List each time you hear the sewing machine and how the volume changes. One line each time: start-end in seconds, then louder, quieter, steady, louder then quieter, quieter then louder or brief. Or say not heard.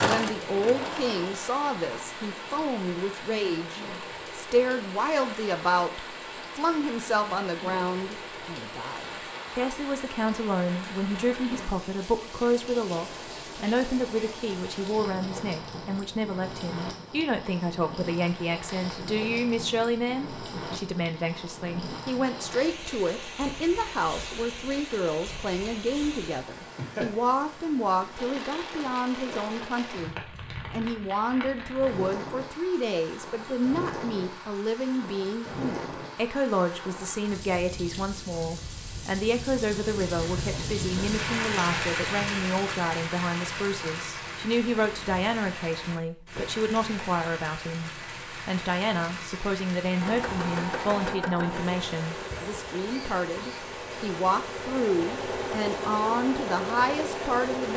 0.0-2.7 brief
50.0-57.7 quieter then louder.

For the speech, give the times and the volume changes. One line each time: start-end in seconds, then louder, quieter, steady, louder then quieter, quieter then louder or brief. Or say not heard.
0.0-57.7 steady.